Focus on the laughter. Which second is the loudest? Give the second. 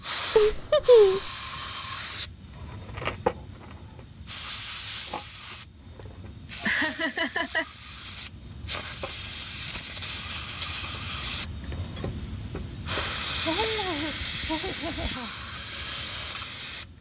1 s.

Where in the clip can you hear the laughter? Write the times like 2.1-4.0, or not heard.
0.3-1.3, 6.6-7.7, 13.4-15.3.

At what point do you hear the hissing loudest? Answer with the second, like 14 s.
13 s.